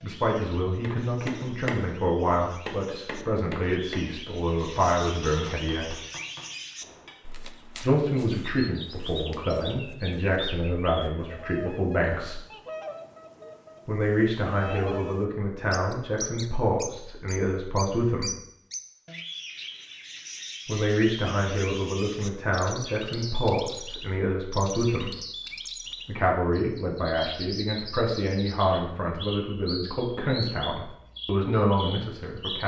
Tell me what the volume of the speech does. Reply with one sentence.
The volume of the speech stays about the same.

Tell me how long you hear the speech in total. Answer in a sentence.
You can hear the speech for 26 seconds altogether.